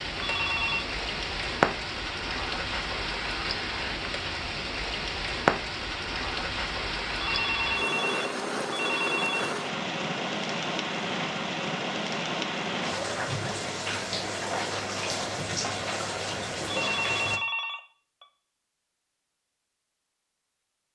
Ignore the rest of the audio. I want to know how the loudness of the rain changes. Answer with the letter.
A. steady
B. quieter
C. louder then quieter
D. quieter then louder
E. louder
A.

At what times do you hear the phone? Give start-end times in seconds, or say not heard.
0.2-0.8, 7.2-9.6, 16.6-18.2.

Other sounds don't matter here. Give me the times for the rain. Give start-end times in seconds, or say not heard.
0.0-17.4.